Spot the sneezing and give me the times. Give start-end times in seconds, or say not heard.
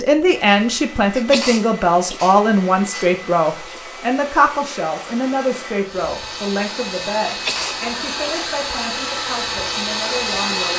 1.1-3.8, 7.2-8.5.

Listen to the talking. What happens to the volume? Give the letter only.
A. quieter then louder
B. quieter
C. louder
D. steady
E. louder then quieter
B.